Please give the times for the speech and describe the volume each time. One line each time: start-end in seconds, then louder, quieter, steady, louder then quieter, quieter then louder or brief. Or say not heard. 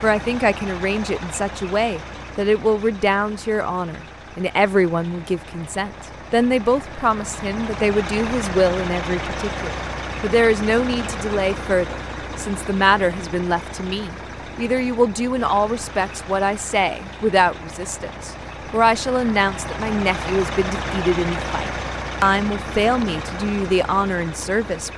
0.0-24.9 steady.